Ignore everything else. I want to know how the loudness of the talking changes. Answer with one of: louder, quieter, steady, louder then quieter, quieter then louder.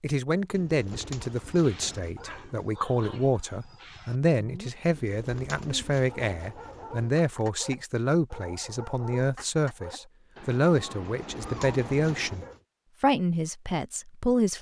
steady.